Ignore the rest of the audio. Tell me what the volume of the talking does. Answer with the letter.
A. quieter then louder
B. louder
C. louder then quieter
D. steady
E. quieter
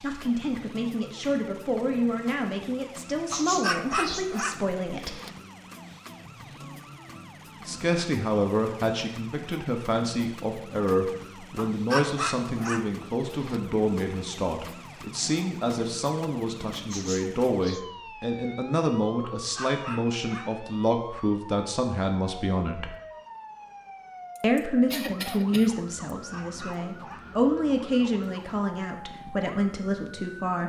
D.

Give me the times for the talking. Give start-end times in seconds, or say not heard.
0.0-5.2, 7.7-22.9, 24.4-30.6.